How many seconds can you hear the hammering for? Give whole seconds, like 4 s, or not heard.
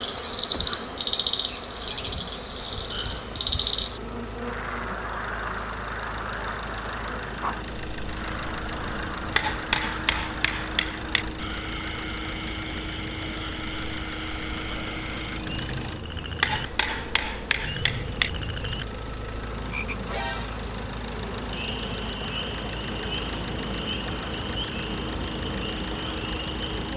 4 s.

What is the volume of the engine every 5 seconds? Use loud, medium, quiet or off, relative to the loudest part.
medium, loud, loud, loud, loud, loud.